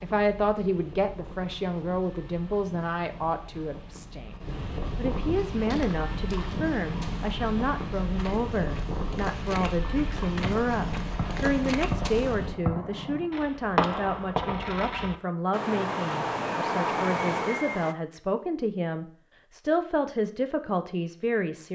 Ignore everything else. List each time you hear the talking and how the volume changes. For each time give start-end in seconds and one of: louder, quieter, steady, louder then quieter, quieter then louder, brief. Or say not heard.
0.0-21.7 steady.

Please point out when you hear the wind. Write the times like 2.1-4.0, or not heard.
0.0-12.6.